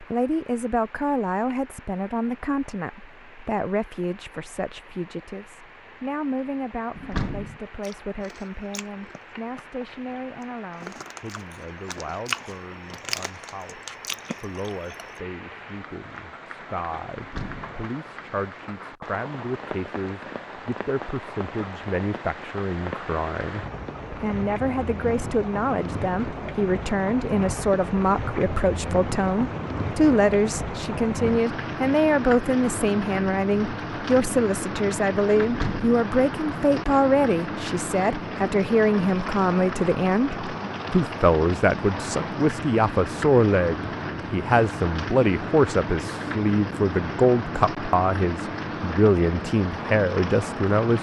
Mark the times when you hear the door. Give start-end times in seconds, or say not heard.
7.0-7.6, 17.1-17.8, 35.4-36.0.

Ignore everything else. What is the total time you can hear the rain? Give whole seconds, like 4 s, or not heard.
51 s.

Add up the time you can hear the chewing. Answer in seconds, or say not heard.
7 s.